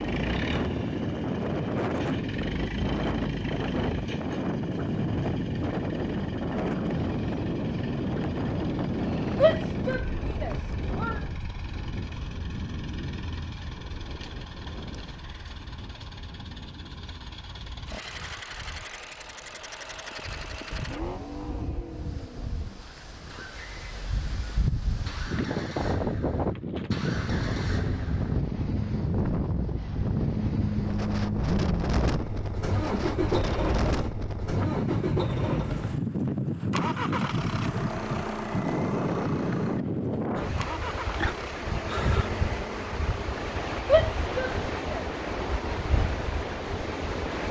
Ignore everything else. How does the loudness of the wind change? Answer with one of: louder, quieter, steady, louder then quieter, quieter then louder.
quieter then louder.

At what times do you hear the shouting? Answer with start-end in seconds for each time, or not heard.
9.4-11.2, 43.9-45.0.